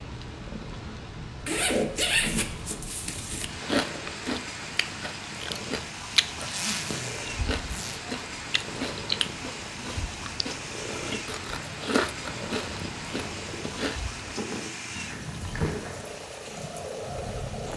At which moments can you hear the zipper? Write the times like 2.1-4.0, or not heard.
1.4-3.5, 6.2-8.0, 14.9-16.1.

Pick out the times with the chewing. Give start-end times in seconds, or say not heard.
3.5-14.5.